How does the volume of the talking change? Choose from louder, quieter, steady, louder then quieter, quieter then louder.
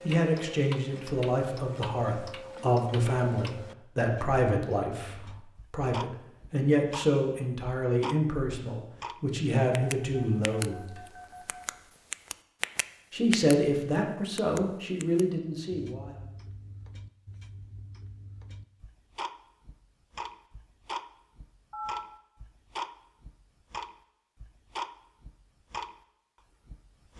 steady.